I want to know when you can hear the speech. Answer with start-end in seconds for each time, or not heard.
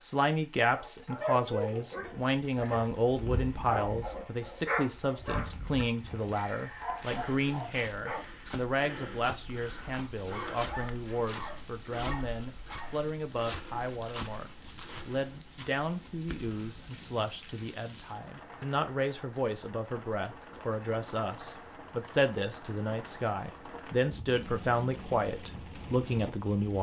0.0-26.7.